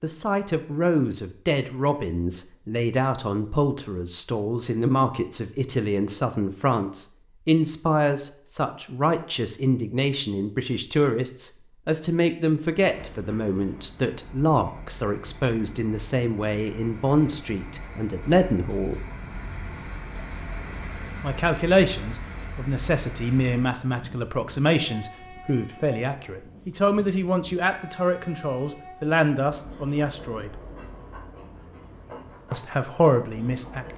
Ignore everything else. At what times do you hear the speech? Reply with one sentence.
You can hear the speech from 0.0 to 19.0 s, from 21.2 to 30.6 s and from 32.5 to 33.9 s.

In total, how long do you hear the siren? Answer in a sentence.
The siren can't be heard in this clip.